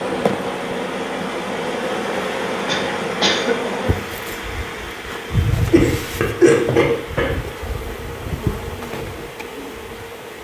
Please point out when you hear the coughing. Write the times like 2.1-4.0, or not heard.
2.6-3.7, 5.7-7.4.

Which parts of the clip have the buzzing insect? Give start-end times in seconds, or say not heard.
0.0-10.3.